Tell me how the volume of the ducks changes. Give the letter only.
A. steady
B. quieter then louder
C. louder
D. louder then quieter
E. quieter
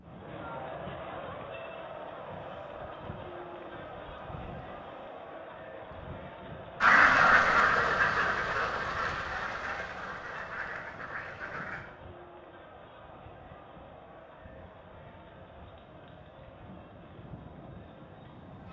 E.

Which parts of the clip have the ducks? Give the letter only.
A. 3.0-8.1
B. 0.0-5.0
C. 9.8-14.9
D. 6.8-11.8
D.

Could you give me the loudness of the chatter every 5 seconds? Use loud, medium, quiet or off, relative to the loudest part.
loud, loud, medium, medium.